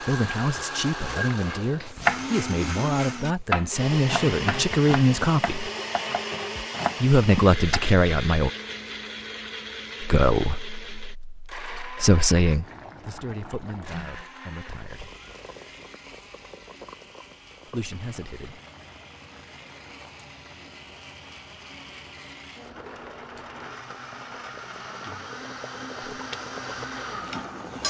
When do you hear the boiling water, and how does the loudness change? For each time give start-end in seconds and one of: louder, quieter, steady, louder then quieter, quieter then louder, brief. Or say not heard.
12.6-27.8 quieter then louder.